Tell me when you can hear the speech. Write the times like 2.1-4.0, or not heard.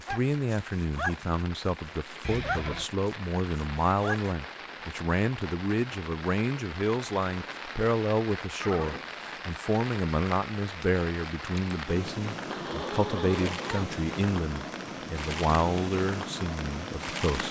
0.0-17.4.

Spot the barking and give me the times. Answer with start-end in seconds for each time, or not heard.
0.0-1.7, 2.3-4.3.